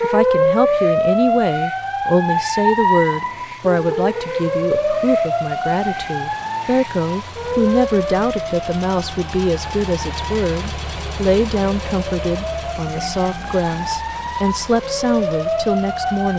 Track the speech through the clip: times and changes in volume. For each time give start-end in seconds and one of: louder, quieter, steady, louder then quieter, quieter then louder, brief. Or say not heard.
0.0-16.3 steady.